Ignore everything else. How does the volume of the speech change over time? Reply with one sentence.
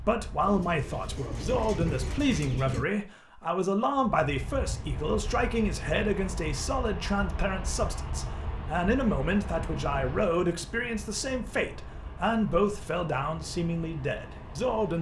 The volume of the speech stays about the same.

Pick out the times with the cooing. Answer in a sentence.
You can hear the cooing from 0.4 to 2.9 s.